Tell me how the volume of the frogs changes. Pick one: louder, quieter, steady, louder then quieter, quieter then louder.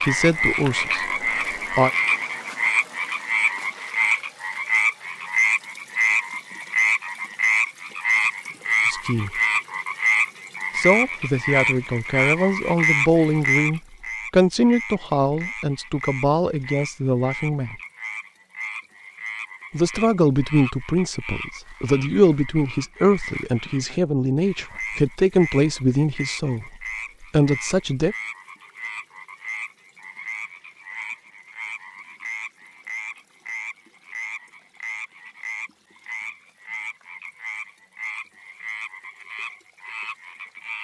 quieter.